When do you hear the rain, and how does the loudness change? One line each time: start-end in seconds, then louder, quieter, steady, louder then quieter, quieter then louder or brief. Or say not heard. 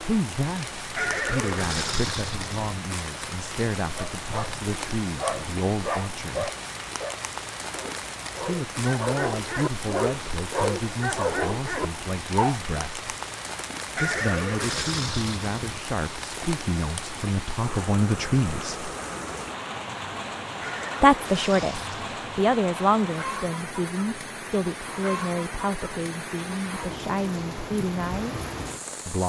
0.0-29.2 steady.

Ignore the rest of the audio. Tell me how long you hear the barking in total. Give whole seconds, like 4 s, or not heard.
9 s.